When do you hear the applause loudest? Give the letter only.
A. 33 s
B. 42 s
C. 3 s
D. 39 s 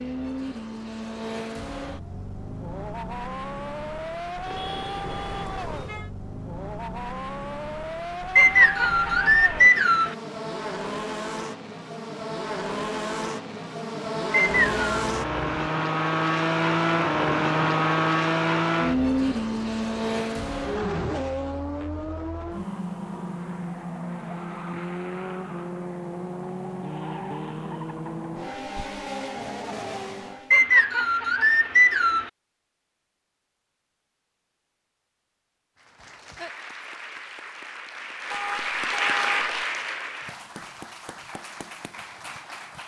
D.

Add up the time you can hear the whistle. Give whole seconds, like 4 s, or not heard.
4 s.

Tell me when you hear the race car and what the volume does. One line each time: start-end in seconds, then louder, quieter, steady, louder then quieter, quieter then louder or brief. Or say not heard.
0.0-30.6 louder then quieter.